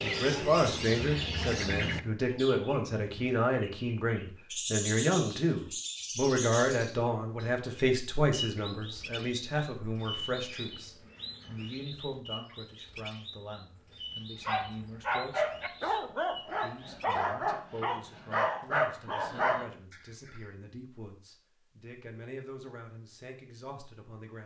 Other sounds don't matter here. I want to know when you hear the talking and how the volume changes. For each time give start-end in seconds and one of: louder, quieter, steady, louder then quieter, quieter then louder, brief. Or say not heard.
0.0-24.4 quieter.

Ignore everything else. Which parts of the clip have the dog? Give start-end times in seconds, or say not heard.
14.4-20.4.